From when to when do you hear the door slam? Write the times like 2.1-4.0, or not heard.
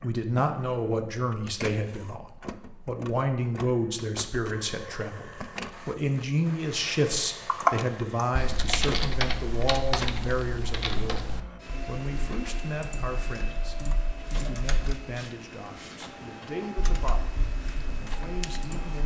not heard.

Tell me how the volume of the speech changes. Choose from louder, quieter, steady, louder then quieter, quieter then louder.
quieter.